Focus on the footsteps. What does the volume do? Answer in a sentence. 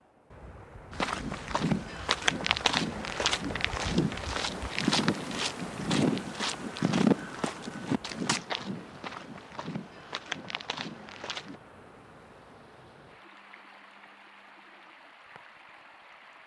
The volume of the footsteps goes down.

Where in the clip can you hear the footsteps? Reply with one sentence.
The footsteps can be heard from 0.9 to 11.6 s.